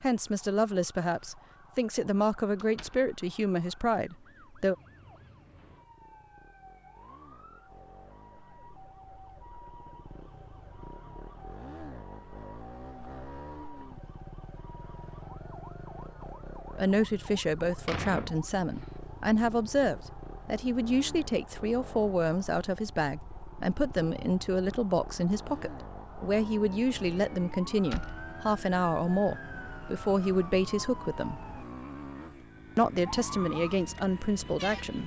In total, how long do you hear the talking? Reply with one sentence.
The talking can be heard for 22 seconds in total.